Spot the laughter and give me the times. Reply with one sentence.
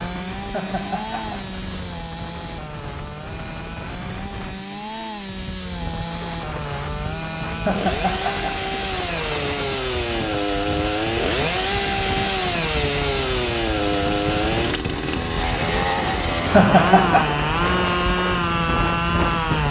You can hear the laughter from 0.5 to 1.6 s, from 7.7 to 8.6 s and from 16.5 to 17.4 s.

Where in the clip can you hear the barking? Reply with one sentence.
The barking can't be heard in this clip.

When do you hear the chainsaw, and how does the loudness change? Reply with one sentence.
The chainsaw can be heard from 0.0 to 19.6 s, getting louder.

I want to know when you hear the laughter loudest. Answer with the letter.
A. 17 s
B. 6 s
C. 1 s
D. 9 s
A.